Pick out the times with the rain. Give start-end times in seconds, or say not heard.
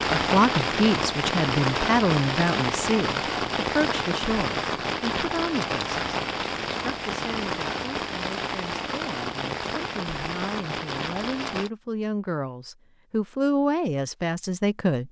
0.0-11.7.